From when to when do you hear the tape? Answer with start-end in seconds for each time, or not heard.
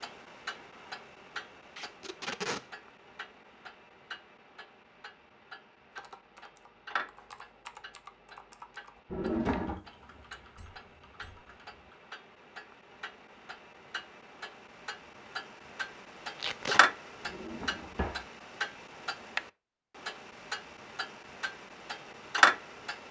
1.8-2.6, 16.4-16.9.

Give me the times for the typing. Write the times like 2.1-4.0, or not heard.
5.9-12.0.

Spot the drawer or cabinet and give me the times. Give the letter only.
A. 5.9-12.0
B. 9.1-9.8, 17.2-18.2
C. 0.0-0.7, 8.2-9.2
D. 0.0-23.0
B.